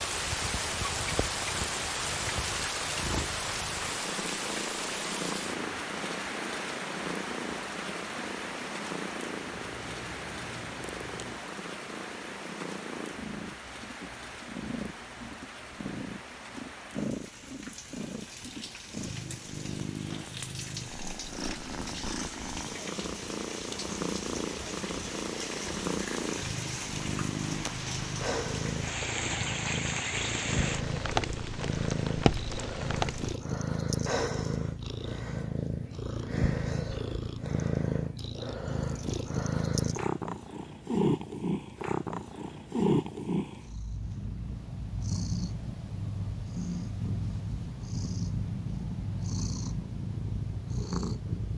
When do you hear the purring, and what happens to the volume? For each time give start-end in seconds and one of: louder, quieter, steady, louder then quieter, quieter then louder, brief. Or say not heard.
0.0-51.5 louder.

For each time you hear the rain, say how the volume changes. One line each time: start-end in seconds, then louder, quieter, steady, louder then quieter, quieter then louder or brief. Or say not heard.
0.0-33.4 quieter then louder.